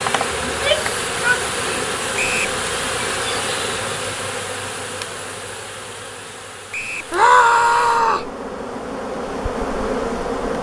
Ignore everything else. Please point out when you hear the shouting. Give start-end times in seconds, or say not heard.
0.5-2.5, 7.1-8.3.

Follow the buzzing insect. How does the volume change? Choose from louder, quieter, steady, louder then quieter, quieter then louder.
quieter then louder.